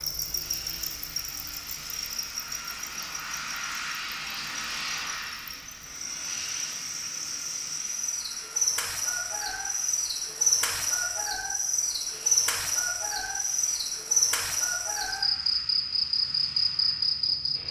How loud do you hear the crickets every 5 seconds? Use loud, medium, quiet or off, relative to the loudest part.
medium, medium, loud, loud.